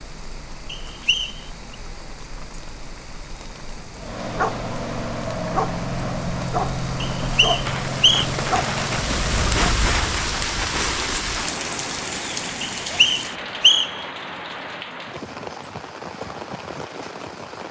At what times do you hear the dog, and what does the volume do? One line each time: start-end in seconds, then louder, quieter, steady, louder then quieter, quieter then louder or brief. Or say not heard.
4.0-9.8 steady.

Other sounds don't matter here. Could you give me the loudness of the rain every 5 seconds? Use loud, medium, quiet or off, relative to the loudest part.
quiet, loud, loud, medium.